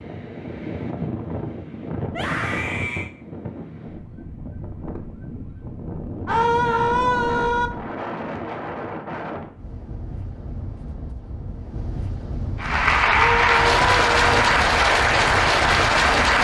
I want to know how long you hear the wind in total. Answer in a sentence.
The wind can be heard for 16 seconds in total.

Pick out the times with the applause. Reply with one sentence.
You can hear the applause from 12.6 to 16.3 s.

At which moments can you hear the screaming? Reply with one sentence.
The screaming can be heard from 2.1 to 3.1 s, from 6.2 to 7.7 s and from 13.1 to 14.4 s.